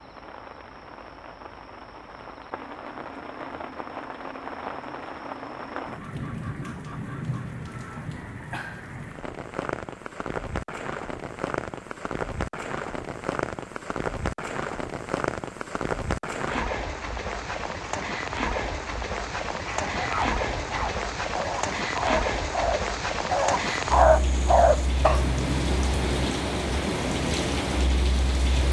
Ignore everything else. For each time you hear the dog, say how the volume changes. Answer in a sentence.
You can hear the dog from 19.6 to 25.3 s, getting louder.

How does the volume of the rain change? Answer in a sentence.
The volume of the rain goes up.